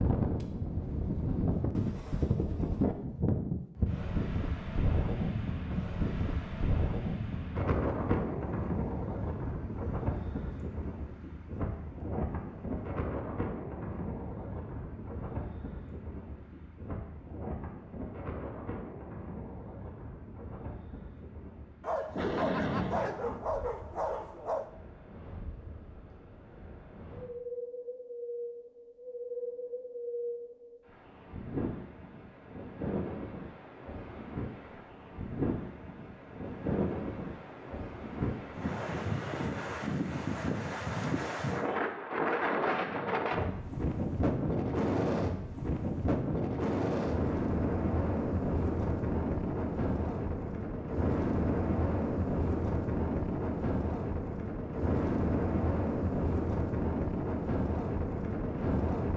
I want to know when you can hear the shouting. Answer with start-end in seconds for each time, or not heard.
not heard.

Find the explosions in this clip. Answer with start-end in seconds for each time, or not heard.
22.1-23.2, 42.5-43.4.